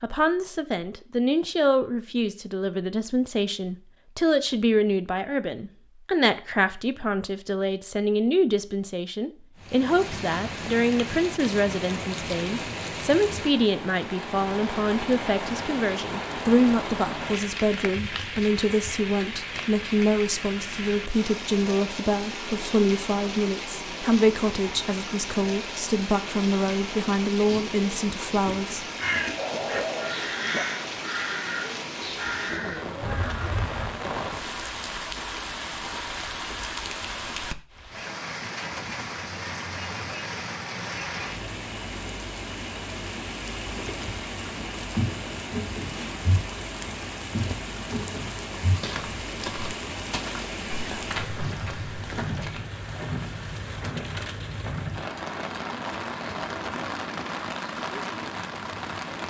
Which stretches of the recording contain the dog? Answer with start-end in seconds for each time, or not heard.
29.4-30.6.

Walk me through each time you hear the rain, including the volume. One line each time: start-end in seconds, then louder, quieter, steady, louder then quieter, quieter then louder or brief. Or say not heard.
9.6-59.2 steady.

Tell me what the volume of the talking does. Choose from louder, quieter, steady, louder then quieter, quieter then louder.
steady.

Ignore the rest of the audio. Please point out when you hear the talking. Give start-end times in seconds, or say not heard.
0.0-28.9.